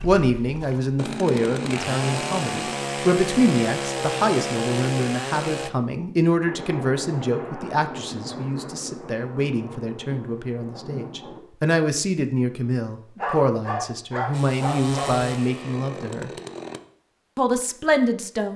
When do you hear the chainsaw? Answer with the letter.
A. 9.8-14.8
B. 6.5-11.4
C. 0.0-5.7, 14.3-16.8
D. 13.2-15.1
C.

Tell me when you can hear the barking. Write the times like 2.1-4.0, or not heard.
13.2-15.1.